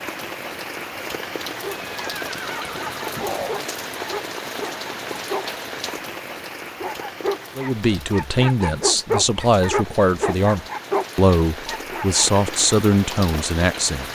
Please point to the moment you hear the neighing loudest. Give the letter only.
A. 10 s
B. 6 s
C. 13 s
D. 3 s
D.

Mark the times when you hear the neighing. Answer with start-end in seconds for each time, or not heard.
1.7-3.6.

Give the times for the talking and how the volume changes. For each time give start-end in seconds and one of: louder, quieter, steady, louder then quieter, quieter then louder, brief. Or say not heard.
7.5-14.1 steady.